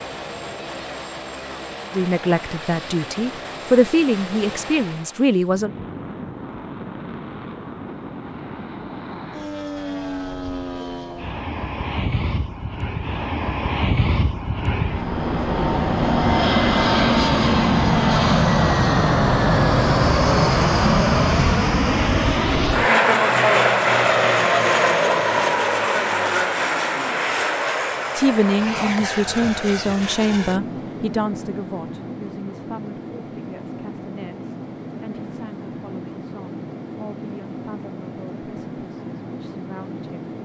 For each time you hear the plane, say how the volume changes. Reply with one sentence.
The plane can be heard from 0.0 to 40.4 s, getting louder then quieter.